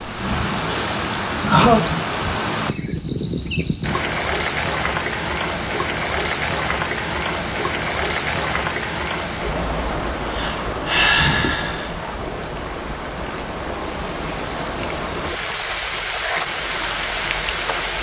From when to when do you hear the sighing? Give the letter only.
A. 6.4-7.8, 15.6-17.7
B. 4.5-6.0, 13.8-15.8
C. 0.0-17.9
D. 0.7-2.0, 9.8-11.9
D.